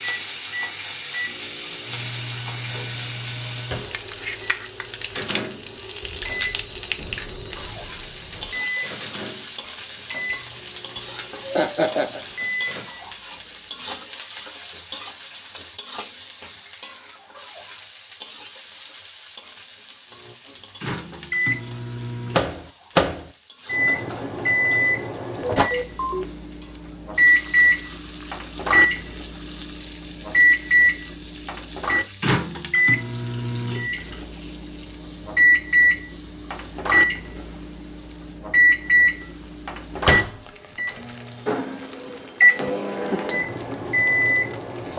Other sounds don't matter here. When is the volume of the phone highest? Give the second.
26 s.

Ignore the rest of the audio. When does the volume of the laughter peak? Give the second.
12 s.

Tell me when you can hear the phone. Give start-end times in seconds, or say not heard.
6.0-8.6, 25.4-26.2.